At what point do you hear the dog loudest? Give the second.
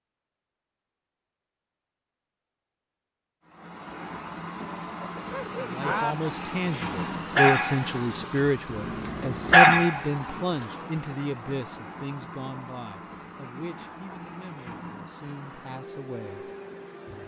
10 s.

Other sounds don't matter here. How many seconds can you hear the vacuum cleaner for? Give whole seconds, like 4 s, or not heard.
14 s.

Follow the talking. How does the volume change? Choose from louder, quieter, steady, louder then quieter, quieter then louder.
quieter.